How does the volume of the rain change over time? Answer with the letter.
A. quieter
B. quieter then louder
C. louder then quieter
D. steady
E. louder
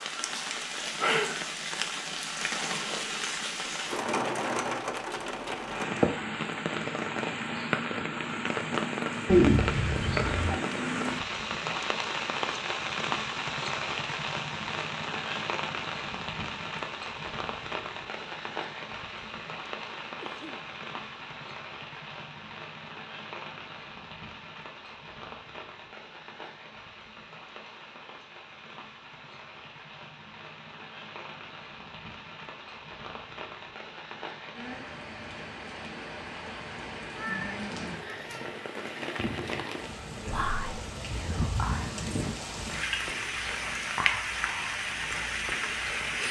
B.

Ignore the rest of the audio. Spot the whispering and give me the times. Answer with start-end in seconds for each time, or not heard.
40.3-46.2.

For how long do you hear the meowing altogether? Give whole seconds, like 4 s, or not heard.
3 s.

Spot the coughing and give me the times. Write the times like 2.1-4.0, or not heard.
20.2-20.7.